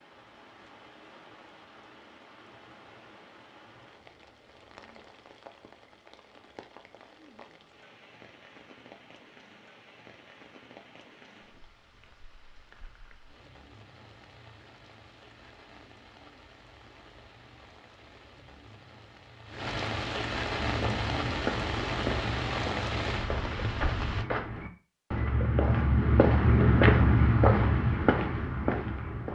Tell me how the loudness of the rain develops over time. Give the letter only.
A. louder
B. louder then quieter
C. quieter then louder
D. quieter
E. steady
A.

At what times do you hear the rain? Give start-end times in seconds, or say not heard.
0.0-24.2.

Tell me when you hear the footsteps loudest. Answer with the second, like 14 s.
27 s.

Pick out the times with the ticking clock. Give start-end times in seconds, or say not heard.
not heard.